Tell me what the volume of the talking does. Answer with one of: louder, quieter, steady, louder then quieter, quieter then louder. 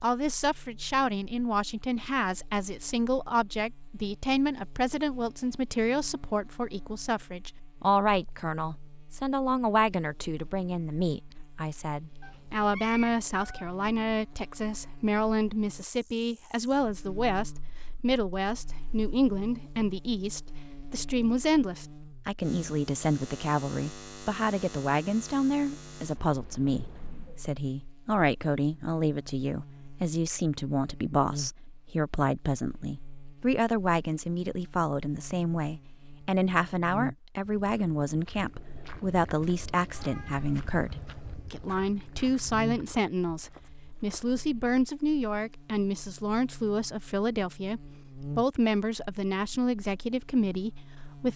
steady.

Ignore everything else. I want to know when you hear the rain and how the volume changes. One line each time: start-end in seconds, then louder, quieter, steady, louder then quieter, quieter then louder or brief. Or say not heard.
not heard.